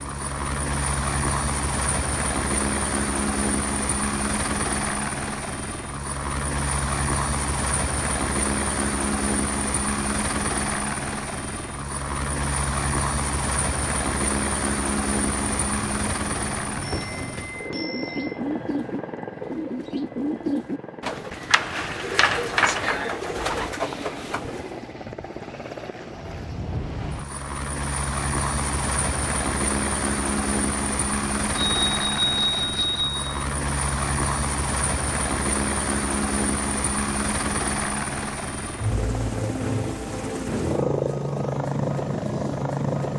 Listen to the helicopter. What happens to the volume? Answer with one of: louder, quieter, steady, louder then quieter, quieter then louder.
quieter then louder.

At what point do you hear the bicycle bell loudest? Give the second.
32 s.